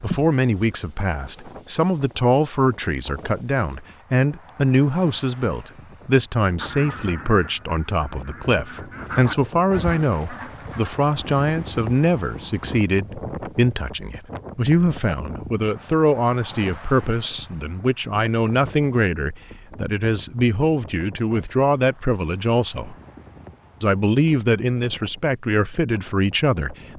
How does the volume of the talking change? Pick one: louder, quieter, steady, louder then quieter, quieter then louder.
steady.